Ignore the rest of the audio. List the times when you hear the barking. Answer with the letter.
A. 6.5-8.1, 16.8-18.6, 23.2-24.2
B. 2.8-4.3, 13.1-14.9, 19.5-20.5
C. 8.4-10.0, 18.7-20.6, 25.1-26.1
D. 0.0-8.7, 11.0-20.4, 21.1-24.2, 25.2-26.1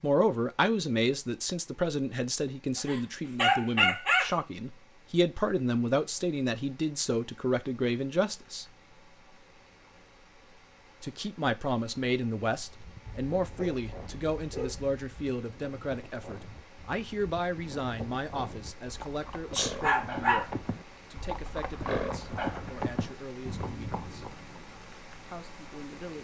B.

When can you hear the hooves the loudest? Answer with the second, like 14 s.
22 s.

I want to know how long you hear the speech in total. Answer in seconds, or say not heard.
22 s.